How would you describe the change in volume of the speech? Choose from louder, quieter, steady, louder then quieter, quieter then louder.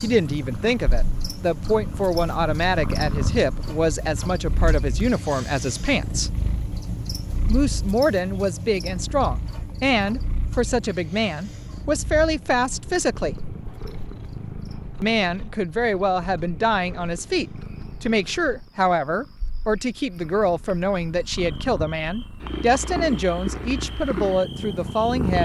steady.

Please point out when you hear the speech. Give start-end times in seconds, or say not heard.
0.0-6.3, 7.5-13.3, 15.0-25.4.